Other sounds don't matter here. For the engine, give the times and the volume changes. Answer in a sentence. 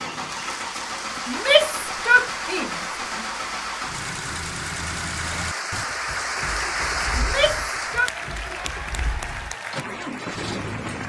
You can hear the engine from 0.0 to 11.0 s, getting quieter then louder.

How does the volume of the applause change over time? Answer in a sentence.
The volume of the applause goes up, then down.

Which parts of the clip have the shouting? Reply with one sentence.
You can hear the shouting from 1.2 to 2.8 s and from 7.2 to 8.1 s.